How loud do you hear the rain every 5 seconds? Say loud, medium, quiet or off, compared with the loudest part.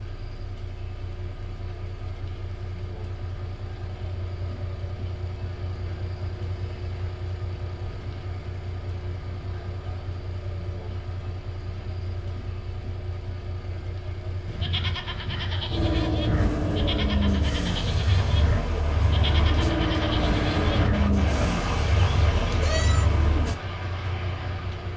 quiet, quiet, quiet, loud, loud.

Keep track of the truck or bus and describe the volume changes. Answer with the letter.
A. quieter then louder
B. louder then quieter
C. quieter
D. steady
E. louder
E.